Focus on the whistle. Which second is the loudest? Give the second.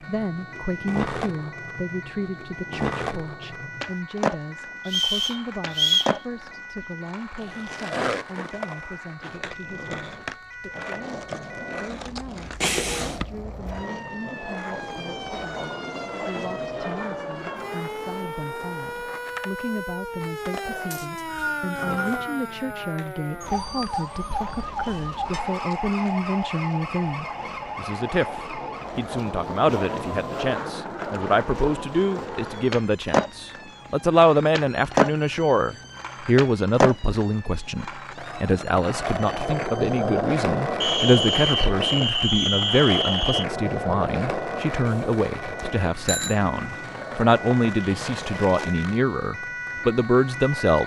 6 s.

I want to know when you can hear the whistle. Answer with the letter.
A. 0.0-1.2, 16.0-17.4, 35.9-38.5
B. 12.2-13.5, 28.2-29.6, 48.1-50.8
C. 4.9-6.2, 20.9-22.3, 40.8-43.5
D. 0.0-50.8
C.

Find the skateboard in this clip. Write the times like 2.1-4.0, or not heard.
0.0-50.8.